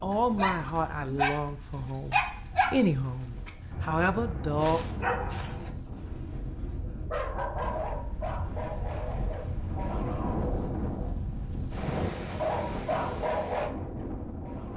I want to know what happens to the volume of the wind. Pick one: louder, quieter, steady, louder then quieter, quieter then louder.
louder.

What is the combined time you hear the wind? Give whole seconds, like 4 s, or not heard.
15 s.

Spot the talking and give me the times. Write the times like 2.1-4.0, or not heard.
0.0-4.8.